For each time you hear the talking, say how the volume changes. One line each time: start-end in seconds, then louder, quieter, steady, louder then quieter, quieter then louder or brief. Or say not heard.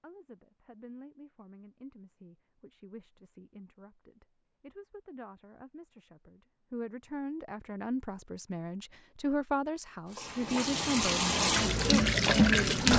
0.0-12.8 louder.